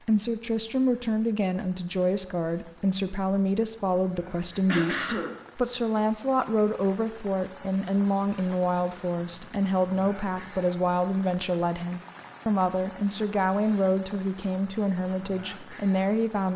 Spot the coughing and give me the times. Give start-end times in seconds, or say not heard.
4.7-5.3.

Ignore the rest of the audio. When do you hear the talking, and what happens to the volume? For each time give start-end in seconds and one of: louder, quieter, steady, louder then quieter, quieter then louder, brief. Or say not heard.
0.1-16.5 steady.